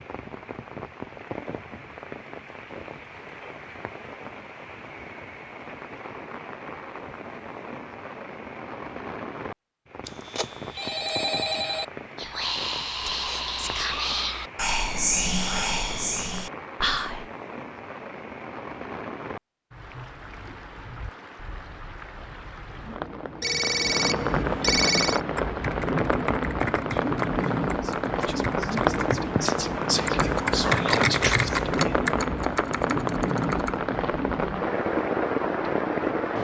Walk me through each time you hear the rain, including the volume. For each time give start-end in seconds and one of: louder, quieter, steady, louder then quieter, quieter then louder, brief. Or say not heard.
0.0-36.3 louder.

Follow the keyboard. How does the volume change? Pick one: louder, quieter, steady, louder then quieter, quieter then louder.
louder then quieter.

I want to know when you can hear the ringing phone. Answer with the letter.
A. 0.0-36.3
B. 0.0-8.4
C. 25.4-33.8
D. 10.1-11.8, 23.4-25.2
D.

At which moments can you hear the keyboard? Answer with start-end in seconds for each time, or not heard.
25.4-33.8.